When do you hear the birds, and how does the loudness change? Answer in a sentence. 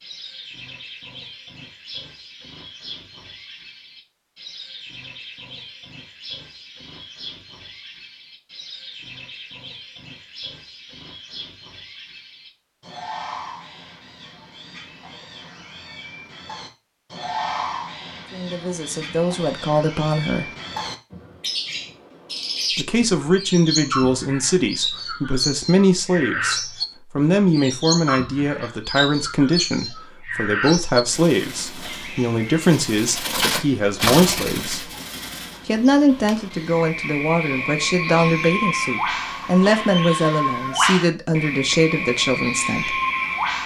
You can hear the birds from 0.0 to 43.6 s, getting louder.